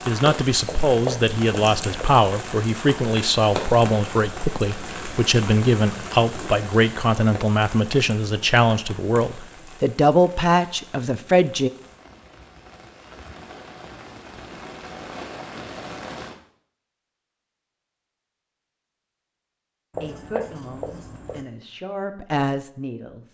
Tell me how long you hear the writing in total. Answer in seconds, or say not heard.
3 s.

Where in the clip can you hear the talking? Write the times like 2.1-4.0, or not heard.
0.1-11.7, 20.0-23.2.